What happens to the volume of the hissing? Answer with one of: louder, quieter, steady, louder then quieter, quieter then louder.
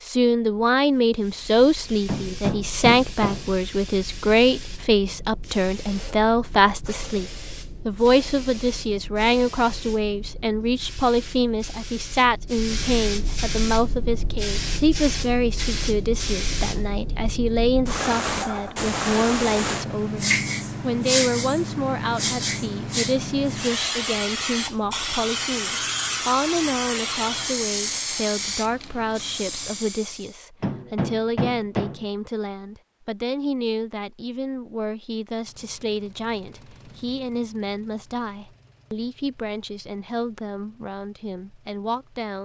louder.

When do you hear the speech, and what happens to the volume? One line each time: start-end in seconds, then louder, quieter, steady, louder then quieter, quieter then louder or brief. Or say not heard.
0.0-42.4 quieter.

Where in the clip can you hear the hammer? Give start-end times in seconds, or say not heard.
2.0-3.5, 30.6-32.0.